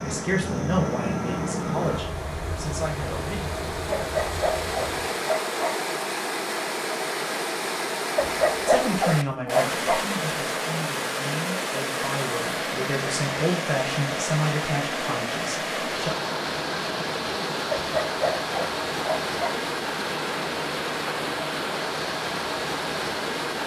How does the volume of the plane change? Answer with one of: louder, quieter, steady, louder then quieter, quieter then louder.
quieter.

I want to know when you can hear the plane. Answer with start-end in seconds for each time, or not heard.
0.0-5.0.